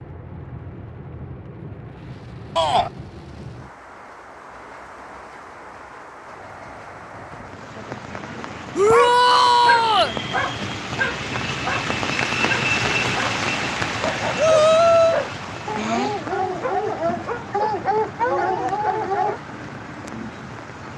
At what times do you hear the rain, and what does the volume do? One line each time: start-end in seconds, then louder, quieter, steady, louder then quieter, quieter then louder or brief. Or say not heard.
0.0-20.9 louder then quieter.